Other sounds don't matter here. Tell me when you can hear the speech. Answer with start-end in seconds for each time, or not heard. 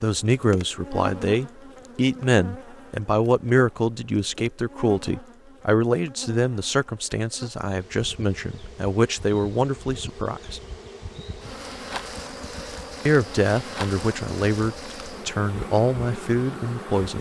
0.0-10.6, 13.1-17.1.